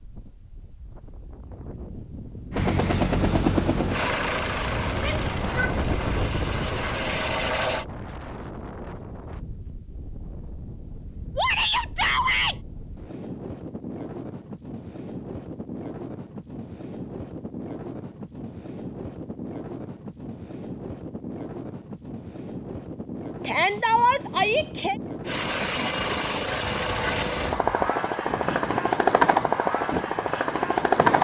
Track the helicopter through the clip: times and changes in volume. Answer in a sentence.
The helicopter can be heard from 2.5 to 7.8 s, getting quieter then louder; and from 25.2 to 31.1 s, getting louder then quieter.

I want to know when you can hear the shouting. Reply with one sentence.
You can hear the shouting from 5.0 to 5.8 s, from 11.3 to 12.6 s and from 23.4 to 24.9 s.